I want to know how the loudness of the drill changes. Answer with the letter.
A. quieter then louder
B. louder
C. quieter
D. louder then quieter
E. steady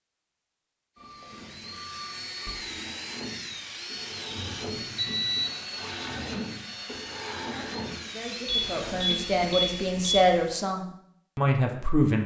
E.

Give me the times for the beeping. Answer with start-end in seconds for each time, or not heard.
0.9-2.5, 4.3-5.5, 8.4-10.3.